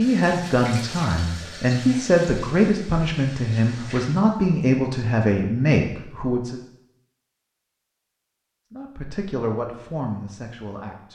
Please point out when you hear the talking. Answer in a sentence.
You can hear the talking from 0.0 to 6.6 s and from 8.7 to 11.1 s.